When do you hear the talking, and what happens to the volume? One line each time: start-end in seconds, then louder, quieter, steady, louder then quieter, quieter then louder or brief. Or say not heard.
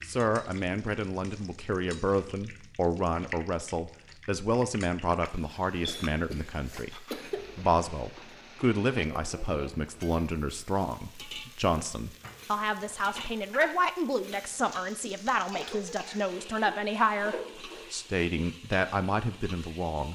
0.1-20.0 steady.